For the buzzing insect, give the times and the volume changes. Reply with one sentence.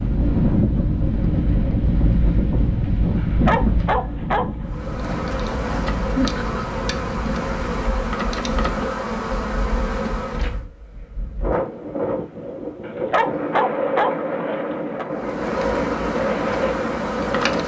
You can hear the buzzing insect from 4.7 to 10.7 s, at a steady volume; and briefly from 15.1 to 17.6 s.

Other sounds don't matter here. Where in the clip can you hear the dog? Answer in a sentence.
The dog can be heard from 3.1 to 4.5 s and from 12.8 to 15.1 s.